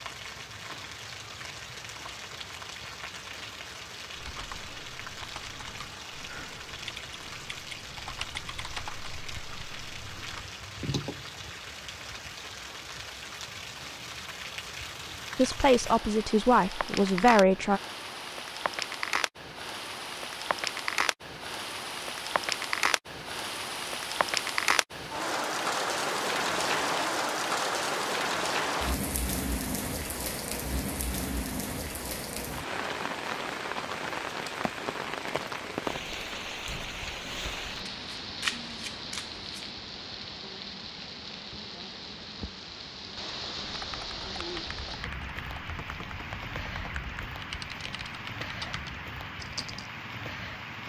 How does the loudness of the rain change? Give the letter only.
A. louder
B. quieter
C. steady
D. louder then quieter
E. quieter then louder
D.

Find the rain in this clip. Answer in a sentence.
You can hear the rain from 0.0 to 50.8 s.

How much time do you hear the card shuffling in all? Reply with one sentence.
You can hear the card shuffling for 2 seconds altogether.